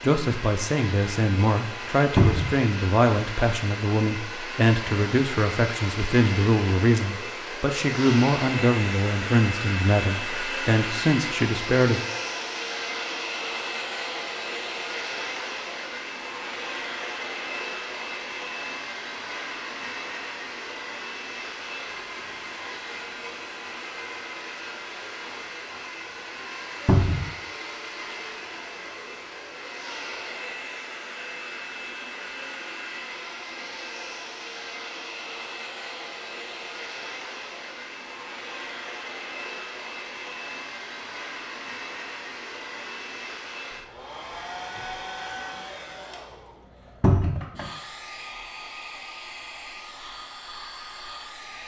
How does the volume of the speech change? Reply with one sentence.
The loudness of the speech stays about the same.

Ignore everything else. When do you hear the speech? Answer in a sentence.
You can hear the speech from 0.0 to 12.0 s.